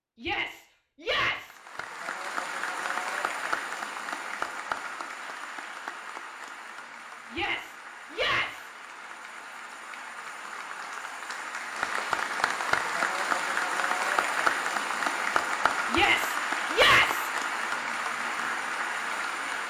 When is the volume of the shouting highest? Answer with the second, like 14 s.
17 s.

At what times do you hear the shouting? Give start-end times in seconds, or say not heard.
0.2-1.6, 7.3-8.7, 15.9-17.3.